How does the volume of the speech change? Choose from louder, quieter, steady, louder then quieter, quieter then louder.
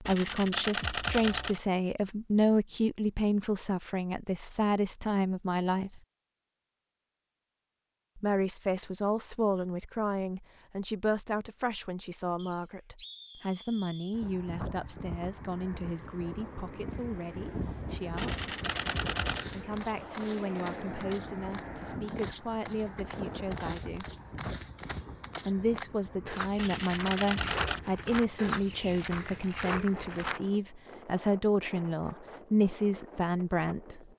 quieter then louder.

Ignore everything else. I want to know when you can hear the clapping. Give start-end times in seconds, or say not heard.
not heard.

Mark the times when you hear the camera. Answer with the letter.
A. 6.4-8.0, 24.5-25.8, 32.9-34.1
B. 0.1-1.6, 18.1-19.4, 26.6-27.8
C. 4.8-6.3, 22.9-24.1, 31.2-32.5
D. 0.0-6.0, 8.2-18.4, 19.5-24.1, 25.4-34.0
B.